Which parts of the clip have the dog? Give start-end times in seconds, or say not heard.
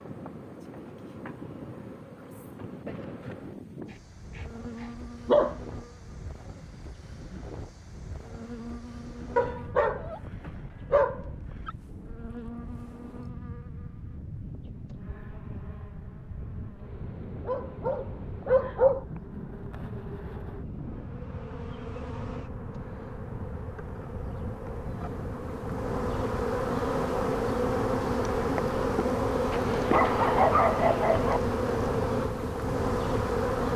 3.9-5.5, 9.3-11.7, 17.4-19.1, 29.5-31.4.